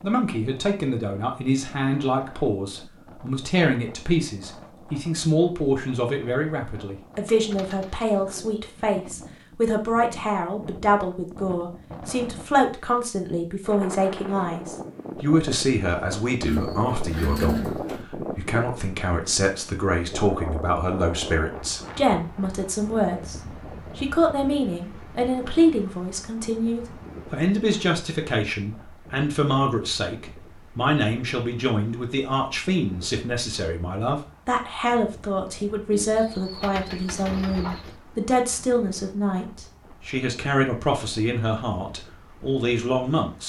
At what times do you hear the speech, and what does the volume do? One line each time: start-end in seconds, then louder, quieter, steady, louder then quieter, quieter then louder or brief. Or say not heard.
0.0-23.4 steady
23.9-43.4 steady.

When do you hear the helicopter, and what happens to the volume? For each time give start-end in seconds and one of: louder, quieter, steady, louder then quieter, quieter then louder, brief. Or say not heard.
not heard.